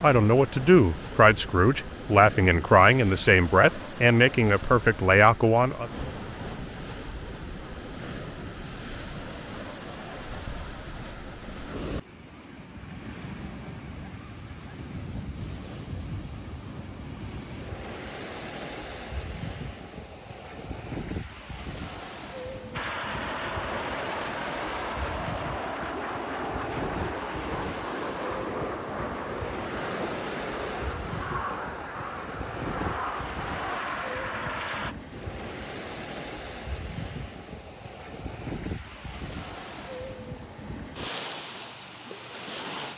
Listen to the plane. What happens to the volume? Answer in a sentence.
The volume of the plane stays about the same.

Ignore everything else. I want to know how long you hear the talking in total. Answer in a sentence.
You can hear the talking for 6 seconds altogether.